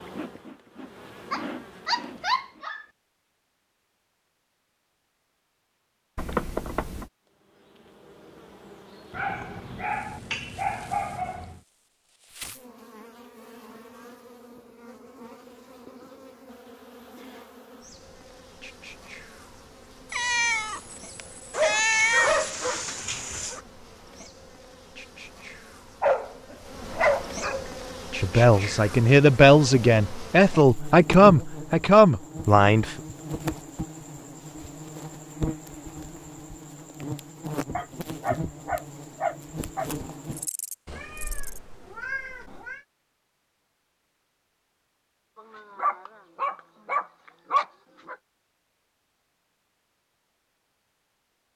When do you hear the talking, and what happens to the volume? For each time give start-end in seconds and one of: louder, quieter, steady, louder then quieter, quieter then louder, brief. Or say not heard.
28.2-33.0 steady.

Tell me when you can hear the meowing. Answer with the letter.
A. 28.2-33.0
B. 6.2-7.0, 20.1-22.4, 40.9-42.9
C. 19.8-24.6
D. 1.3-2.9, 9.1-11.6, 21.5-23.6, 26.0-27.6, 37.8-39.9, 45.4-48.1
B.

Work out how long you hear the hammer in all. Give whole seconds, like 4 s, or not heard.
not heard.